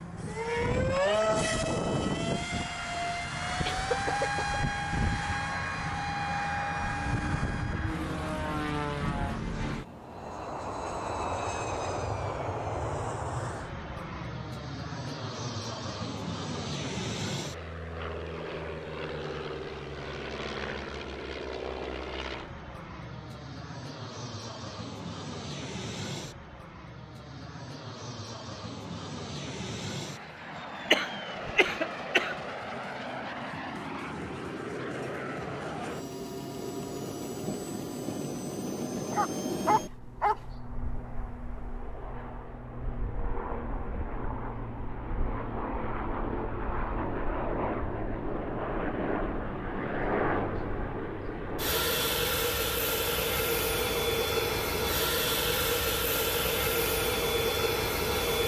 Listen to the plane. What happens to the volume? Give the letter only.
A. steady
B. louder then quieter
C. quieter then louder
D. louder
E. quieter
C.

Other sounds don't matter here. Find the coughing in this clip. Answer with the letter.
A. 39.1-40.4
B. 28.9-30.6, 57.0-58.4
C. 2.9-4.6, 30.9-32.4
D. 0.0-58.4
C.